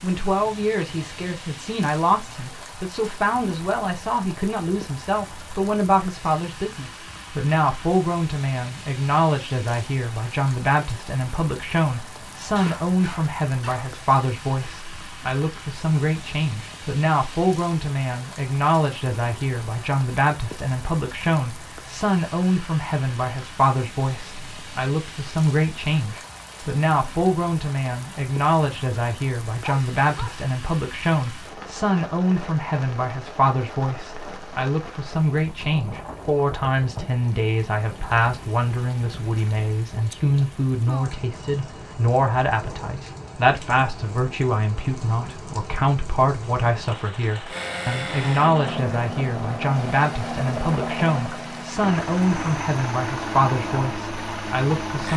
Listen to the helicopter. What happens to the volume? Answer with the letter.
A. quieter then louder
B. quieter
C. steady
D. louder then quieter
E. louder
C.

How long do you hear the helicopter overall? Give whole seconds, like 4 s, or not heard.
8 s.